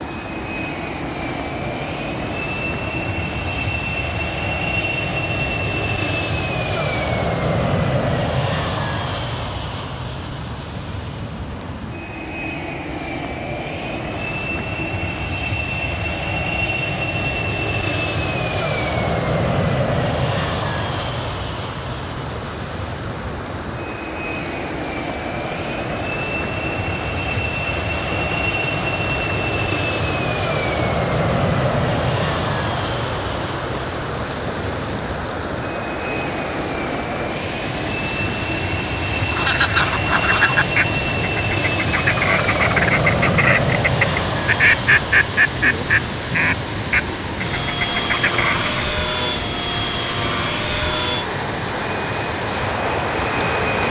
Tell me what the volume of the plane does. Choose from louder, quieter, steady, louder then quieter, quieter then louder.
steady.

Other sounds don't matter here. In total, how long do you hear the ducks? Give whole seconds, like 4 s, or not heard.
10 s.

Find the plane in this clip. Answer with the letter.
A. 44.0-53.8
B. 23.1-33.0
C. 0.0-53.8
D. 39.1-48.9
C.